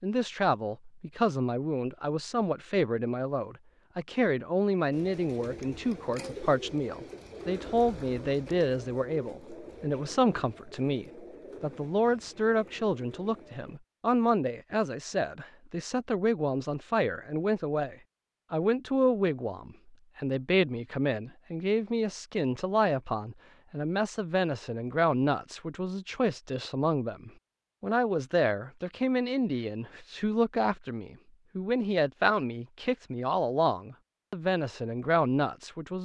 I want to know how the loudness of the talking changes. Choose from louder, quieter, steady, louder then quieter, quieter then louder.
steady.